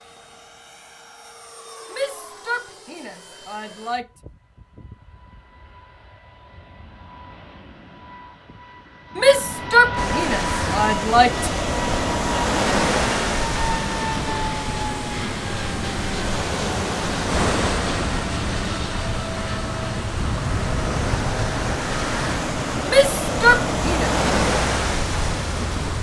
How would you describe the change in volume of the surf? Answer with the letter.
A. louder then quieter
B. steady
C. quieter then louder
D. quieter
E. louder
C.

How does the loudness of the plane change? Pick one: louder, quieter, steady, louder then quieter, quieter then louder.
louder.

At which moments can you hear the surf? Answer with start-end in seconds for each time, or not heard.
9.9-25.9.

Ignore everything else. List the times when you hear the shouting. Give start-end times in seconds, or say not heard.
1.9-4.0, 9.2-11.5, 22.9-24.1.